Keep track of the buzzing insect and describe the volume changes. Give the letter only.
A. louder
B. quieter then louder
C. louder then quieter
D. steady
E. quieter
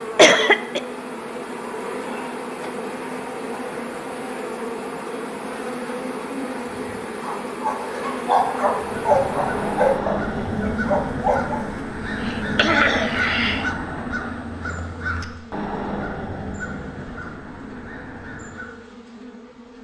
E.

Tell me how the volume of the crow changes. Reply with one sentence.
The loudness of the crow goes down.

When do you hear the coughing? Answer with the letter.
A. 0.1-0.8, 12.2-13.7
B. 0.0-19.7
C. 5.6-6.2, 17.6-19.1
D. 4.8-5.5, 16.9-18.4
A.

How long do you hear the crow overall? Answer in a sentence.
The crow can be heard for 10 seconds in total.